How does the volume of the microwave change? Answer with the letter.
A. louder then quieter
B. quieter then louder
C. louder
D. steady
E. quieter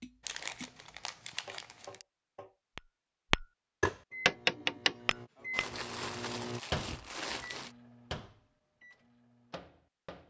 A.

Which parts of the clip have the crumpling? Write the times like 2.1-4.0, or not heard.
0.2-2.0, 5.5-7.8.